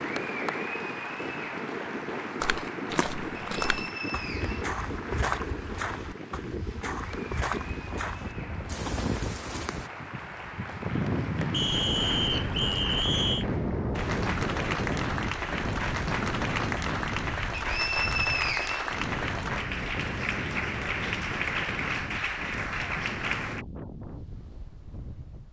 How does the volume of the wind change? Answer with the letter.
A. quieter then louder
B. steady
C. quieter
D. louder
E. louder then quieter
E.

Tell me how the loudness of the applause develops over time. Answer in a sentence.
The loudness of the applause goes down, then up.